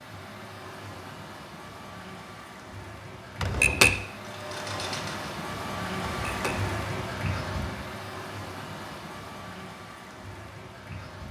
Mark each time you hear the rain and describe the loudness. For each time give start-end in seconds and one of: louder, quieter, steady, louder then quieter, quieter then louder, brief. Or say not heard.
0.0-11.2 louder then quieter.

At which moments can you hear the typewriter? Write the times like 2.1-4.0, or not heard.
3.4-4.0, 6.1-6.6.